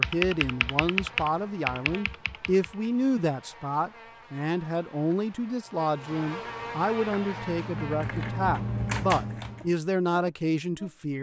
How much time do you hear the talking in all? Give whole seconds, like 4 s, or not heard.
11 s.